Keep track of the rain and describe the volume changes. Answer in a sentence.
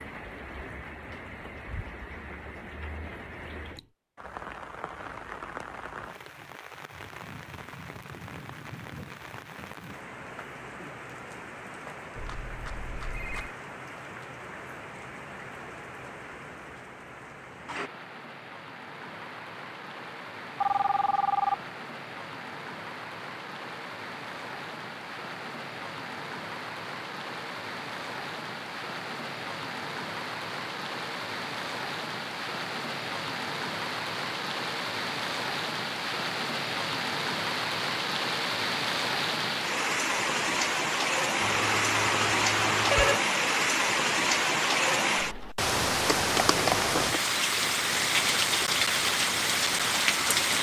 The loudness of the rain goes up.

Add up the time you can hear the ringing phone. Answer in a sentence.
You can hear the ringing phone for 4 seconds altogether.